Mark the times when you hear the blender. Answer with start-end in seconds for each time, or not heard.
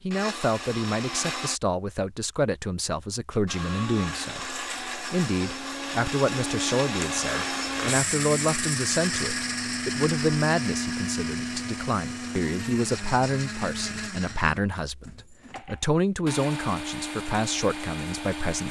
0.0-1.6, 3.5-18.6.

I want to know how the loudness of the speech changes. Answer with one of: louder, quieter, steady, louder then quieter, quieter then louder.
steady.